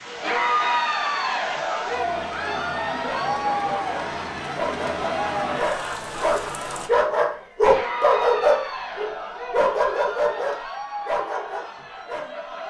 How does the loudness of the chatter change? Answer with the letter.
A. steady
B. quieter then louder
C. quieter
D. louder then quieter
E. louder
C.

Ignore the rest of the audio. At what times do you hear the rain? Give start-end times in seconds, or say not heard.
0.0-6.9.